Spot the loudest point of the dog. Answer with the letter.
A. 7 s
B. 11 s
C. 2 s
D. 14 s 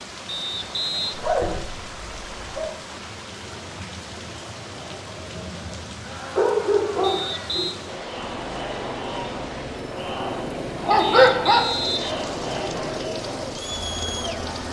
B.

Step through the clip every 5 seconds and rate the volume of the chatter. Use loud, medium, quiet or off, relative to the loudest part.
quiet, medium, loud.